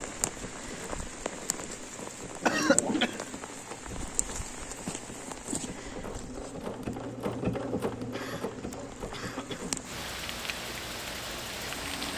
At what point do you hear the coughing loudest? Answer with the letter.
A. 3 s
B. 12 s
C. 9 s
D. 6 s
A.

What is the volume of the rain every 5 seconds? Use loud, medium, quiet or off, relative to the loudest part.
loud, medium, loud.